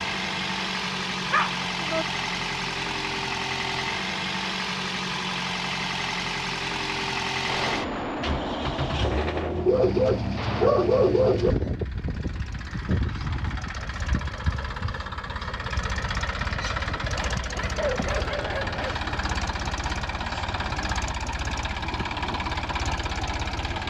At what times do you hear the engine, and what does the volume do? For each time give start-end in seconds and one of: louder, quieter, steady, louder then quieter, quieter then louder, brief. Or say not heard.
0.0-23.8 steady.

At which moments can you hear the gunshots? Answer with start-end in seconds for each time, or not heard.
7.5-10.7.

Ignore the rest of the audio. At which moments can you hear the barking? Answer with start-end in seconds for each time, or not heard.
1.3-2.0, 9.7-11.6, 17.1-19.0.